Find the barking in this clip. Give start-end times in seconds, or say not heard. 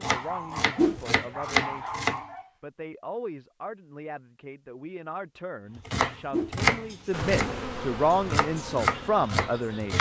0.0-2.5.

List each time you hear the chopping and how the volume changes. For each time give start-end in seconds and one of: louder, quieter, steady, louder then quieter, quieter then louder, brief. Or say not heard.
0.0-2.2 brief
5.8-9.9 quieter then louder.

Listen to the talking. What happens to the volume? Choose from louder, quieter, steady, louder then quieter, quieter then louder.
louder.